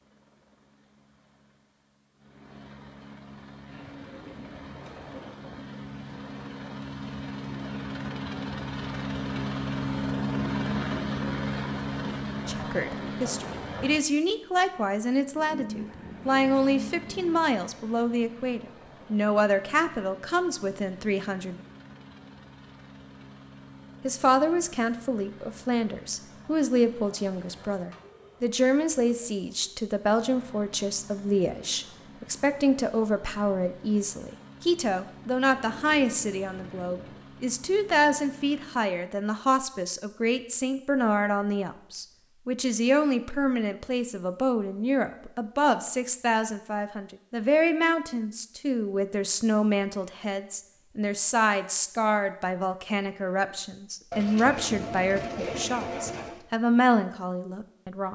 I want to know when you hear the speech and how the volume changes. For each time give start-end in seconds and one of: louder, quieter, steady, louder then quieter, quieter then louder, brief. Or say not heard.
12.4-21.6 steady
24.0-58.0 steady.